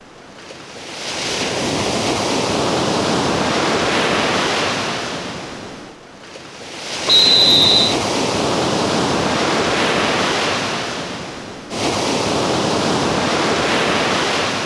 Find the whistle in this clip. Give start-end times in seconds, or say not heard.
7.0-8.0.